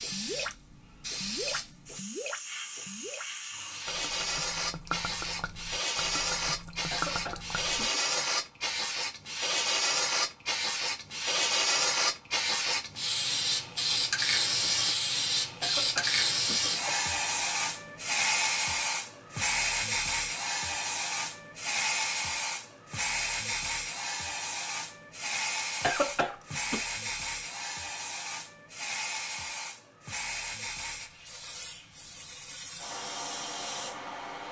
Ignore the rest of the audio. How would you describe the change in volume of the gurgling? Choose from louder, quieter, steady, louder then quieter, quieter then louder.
quieter then louder.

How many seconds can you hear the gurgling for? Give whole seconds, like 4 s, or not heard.
8 s.